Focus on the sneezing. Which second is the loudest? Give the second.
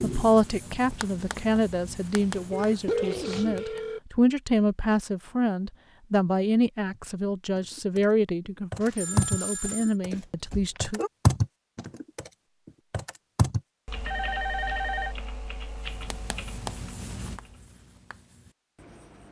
3 s.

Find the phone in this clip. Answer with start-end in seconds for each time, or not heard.
2.5-4.0, 8.8-9.9, 14.1-15.2.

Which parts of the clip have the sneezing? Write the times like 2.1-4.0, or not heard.
2.1-3.5, 10.1-11.1.